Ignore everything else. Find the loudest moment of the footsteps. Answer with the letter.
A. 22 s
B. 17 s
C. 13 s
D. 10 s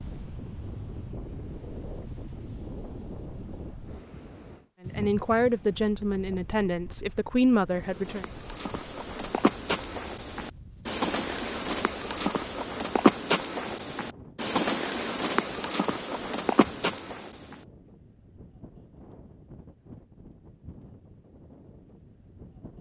C.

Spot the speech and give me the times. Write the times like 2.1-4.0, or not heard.
4.8-8.2.